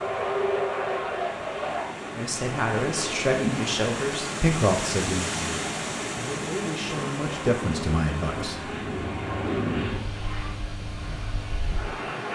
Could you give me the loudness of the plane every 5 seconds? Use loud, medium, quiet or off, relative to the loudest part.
loud, loud, medium.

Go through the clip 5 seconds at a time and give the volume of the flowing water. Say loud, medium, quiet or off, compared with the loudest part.
loud, loud, medium.